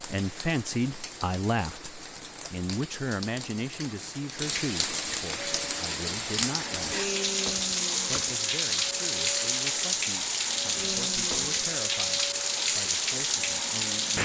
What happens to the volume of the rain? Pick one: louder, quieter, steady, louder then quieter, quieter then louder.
louder.